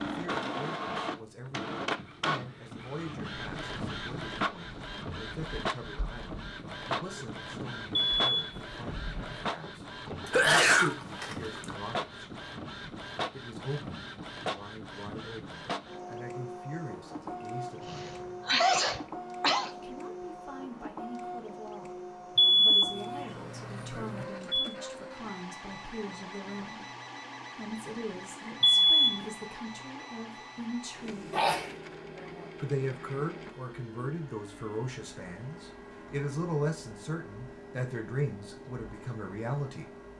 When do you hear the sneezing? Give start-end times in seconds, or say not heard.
10.2-11.8, 17.9-19.7, 31.3-32.5.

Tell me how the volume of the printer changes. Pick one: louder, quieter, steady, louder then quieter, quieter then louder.
quieter.